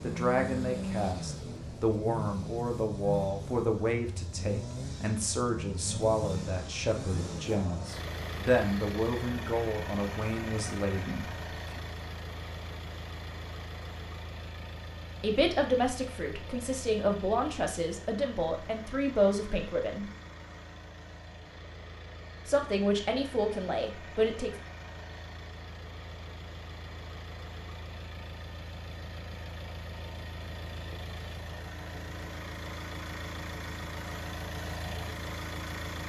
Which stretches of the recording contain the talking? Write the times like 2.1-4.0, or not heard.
0.0-11.8, 15.2-20.1, 22.4-24.5.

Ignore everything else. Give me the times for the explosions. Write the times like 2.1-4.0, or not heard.
not heard.